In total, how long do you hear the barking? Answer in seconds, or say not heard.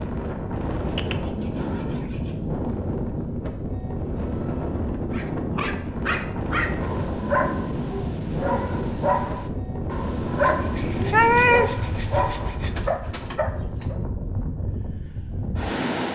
9 s.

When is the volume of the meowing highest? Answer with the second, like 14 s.
11 s.